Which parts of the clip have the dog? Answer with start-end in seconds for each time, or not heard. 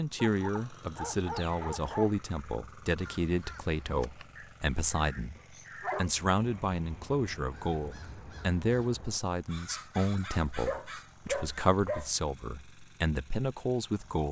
0.2-2.1, 5.3-6.7, 10.7-12.1.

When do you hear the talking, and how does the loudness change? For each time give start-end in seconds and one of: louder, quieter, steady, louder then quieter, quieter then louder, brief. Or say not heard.
0.0-14.2 steady.